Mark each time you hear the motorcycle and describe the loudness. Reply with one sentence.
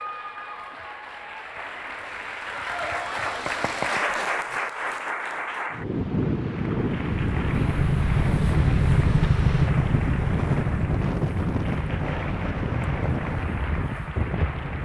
The motorcycle can be heard from 7.0 to 14.8 s, getting quieter.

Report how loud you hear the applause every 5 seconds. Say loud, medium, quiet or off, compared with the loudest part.
loud, medium, medium.